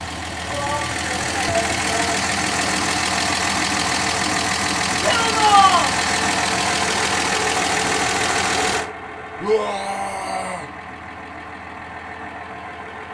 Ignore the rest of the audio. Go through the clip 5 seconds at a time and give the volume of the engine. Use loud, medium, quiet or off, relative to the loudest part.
loud, loud, quiet.